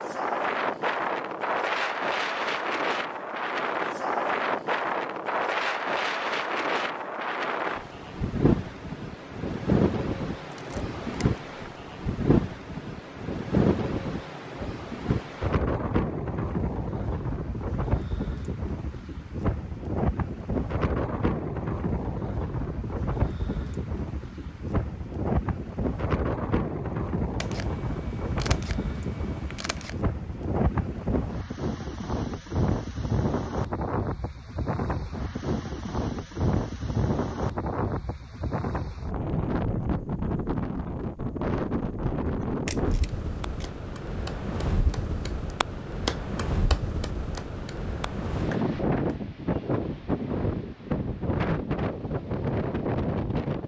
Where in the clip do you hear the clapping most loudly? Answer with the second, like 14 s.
46 s.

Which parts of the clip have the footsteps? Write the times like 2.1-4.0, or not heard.
not heard.